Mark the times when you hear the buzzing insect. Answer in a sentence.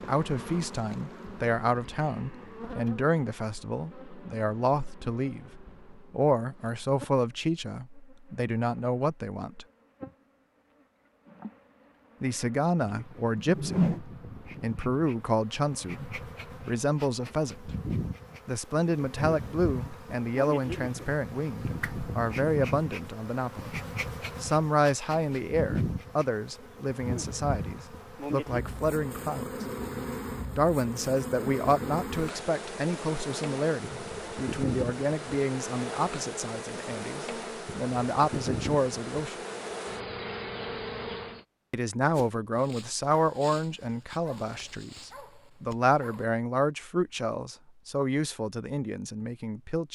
The buzzing insect can be heard from 0.0 to 41.5 s.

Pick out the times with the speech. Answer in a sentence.
The speech can be heard from 0.1 to 9.7 s, from 12.2 to 17.8 s, from 18.4 to 23.8 s, from 24.4 to 29.6 s, from 30.6 to 39.4 s and from 41.7 to 49.8 s.